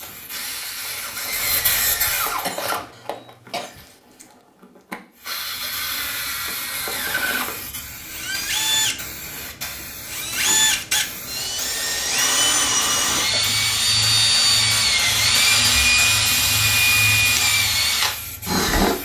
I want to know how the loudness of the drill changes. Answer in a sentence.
The volume of the drill goes up.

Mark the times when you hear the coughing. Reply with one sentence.
You can hear the coughing from 2.4 to 3.8 s and from 13.1 to 13.6 s.